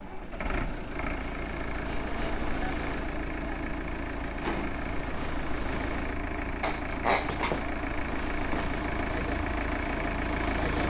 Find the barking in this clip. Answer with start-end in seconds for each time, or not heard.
6.6-8.8.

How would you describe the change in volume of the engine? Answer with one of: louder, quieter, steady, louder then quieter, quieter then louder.
steady.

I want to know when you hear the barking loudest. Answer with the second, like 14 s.
7 s.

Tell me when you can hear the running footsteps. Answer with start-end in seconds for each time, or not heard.
not heard.